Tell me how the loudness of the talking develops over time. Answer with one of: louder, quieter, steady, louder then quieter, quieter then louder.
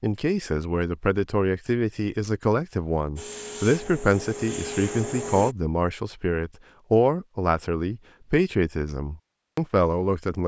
steady.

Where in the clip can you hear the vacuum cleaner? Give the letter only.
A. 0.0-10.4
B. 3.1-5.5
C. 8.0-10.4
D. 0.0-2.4
B.